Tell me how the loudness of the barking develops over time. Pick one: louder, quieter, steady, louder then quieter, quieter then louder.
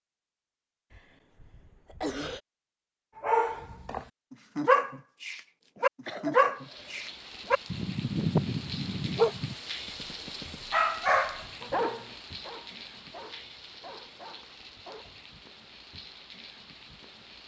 quieter.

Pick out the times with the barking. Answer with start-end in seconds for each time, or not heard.
3.1-15.1.